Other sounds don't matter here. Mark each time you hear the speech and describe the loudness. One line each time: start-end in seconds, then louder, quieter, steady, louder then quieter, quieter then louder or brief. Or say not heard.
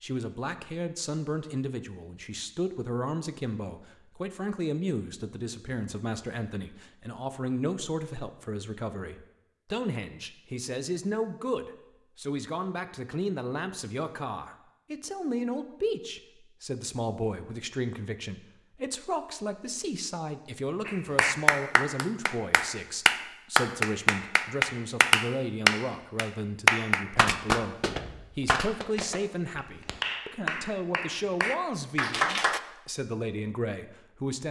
0.0-34.4 steady.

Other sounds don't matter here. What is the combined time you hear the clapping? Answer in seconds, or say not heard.
12 s.